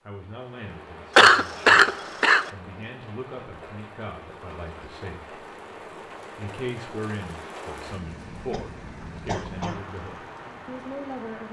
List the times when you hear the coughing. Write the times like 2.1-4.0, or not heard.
1.1-2.5, 8.5-9.8.